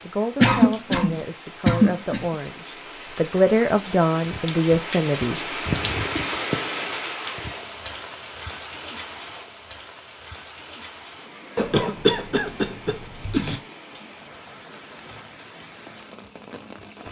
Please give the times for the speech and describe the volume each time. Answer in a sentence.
The speech can be heard from 0.0 to 5.4 s, getting louder.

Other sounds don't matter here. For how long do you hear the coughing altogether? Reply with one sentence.
The coughing can be heard for 4 seconds in total.